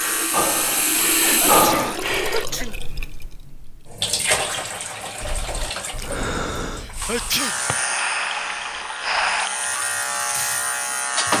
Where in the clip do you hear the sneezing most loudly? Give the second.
7 s.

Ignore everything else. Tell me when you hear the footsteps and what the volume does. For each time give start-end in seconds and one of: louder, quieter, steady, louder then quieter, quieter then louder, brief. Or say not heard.
not heard.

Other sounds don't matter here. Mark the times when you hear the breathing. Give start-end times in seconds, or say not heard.
0.0-2.5, 5.2-9.5.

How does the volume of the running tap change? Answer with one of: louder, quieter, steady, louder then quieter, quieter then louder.
quieter.